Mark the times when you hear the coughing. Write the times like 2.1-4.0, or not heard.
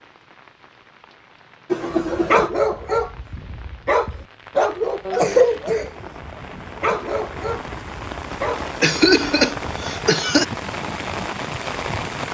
1.7-2.5, 5.0-5.9, 8.8-10.4.